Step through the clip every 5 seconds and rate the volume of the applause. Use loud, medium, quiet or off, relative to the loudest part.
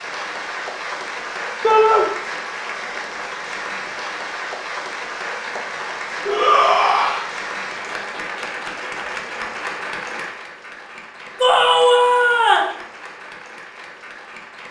loud, loud, medium.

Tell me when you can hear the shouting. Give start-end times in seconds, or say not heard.
1.6-2.0, 6.2-7.2, 11.4-12.8.